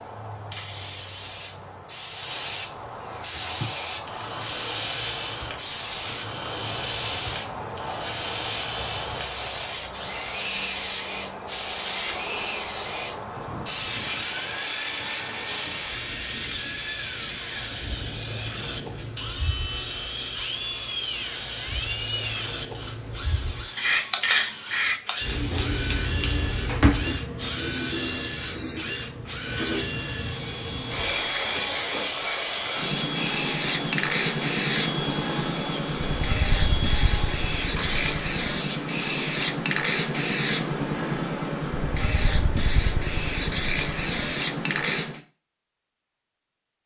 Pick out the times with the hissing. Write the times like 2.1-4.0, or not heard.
0.0-45.2.